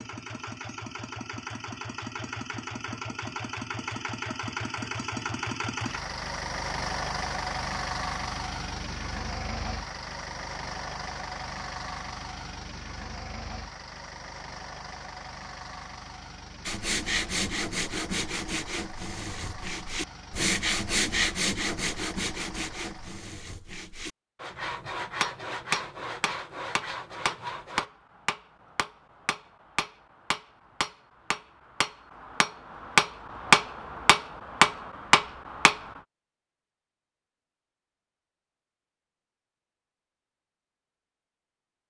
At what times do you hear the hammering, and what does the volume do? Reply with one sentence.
The hammering can be heard from 25.2 to 35.8 s, getting louder.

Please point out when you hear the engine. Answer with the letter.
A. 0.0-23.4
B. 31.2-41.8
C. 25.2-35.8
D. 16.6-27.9
A.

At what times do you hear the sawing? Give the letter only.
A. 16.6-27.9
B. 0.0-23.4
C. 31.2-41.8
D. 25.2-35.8
A.